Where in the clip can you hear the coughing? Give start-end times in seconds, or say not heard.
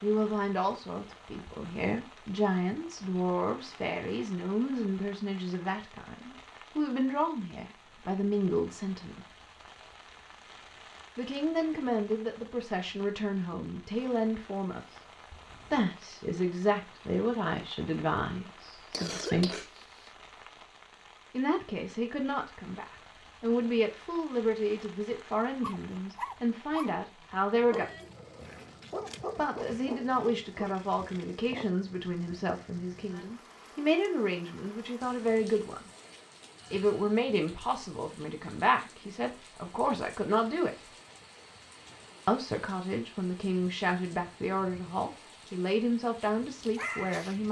18.9-20.1.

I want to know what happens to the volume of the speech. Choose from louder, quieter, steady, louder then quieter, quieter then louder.
steady.